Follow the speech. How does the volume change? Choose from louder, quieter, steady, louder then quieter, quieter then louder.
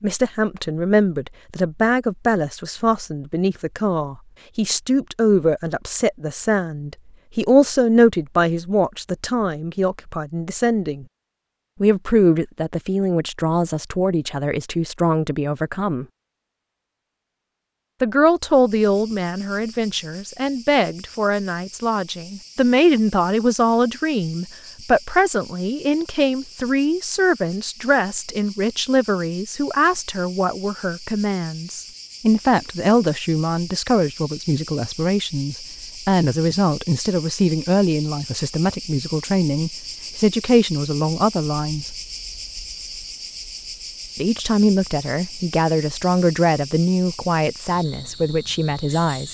steady.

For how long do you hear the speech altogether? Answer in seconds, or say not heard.
44 s.